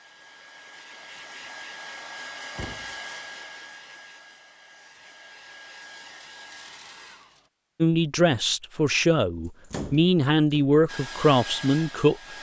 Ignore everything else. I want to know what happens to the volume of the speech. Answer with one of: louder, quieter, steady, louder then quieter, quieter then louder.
steady.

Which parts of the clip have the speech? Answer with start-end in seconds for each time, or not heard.
7.8-12.2.